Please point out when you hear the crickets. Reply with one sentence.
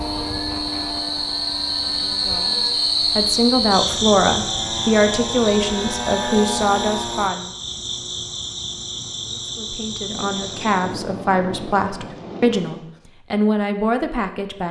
The crickets can be heard from 0.0 to 10.9 s.